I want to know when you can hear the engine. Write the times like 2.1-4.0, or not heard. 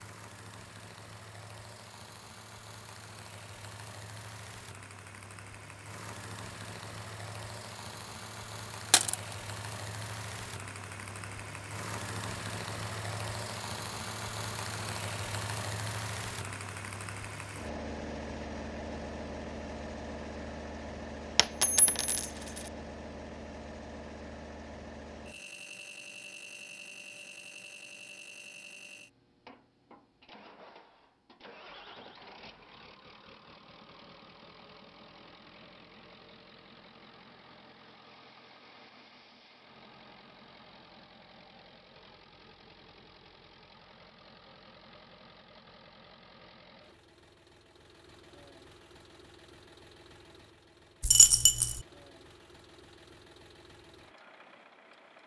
0.0-55.2.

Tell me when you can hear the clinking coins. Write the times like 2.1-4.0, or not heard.
8.9-9.3, 21.4-22.6, 51.0-51.8.